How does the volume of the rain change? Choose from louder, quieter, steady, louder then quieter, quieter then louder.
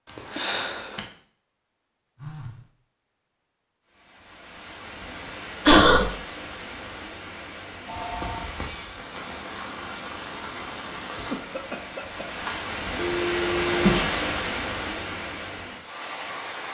louder.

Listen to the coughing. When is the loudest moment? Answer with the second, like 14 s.
6 s.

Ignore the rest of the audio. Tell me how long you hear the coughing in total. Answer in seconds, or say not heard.
3 s.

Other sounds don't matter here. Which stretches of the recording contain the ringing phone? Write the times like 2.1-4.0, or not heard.
2.1-2.6, 7.8-8.5, 12.9-13.9.